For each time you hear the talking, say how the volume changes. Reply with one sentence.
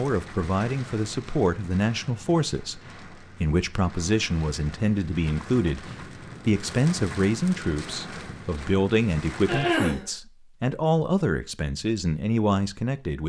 The talking can be heard briefly from 0.0 to 2.8 s; and from 3.4 to 13.2 s, at a steady volume.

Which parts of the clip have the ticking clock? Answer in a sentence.
The ticking clock can't be heard in this clip.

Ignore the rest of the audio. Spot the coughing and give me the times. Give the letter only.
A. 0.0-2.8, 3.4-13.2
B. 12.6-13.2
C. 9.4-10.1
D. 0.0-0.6
C.